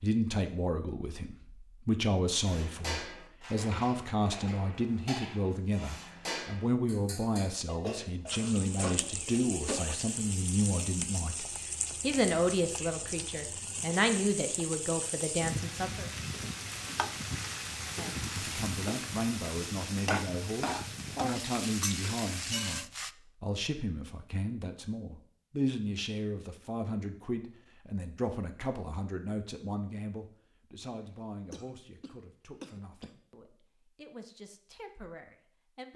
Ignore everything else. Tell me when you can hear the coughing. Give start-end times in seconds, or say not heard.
30.9-33.2.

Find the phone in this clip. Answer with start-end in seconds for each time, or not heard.
not heard.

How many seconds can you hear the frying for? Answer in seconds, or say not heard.
15 s.